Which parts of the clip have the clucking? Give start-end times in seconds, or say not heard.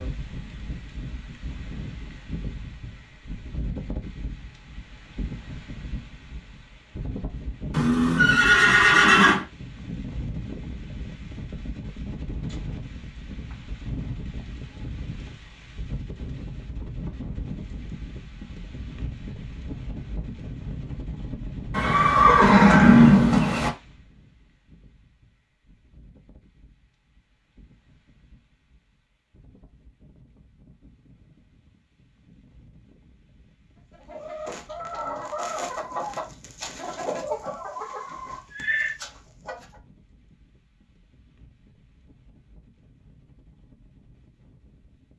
33.9-39.8.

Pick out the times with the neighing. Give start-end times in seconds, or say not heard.
7.7-9.4, 21.7-23.7, 38.0-39.0.